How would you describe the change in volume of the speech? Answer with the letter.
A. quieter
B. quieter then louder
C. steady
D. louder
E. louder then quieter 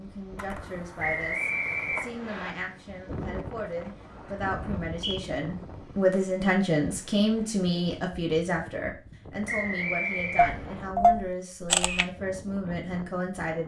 E.